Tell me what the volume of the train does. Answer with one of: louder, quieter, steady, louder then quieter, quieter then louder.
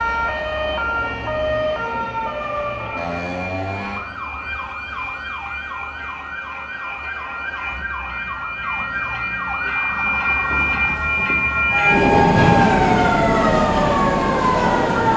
louder.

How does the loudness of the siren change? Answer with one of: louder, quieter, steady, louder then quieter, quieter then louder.
quieter then louder.